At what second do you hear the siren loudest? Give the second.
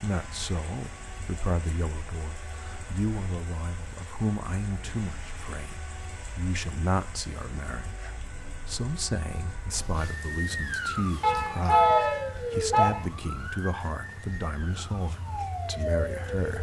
12 s.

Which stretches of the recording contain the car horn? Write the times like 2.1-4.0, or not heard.
11.2-12.9.